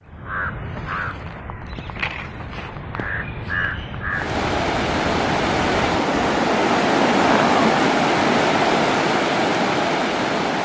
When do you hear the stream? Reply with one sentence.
The stream can be heard from 4.1 to 10.6 s.